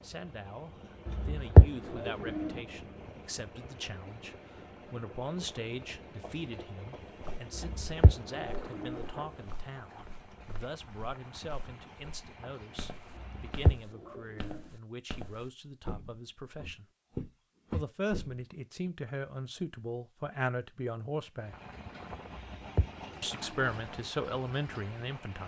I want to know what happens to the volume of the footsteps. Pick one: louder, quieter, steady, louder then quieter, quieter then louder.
louder.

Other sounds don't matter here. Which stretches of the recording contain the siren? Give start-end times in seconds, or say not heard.
not heard.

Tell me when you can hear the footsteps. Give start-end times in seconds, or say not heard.
7.1-18.9.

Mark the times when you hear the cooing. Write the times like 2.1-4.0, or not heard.
1.1-2.5, 7.5-9.0, 13.2-14.6, 22.4-23.5.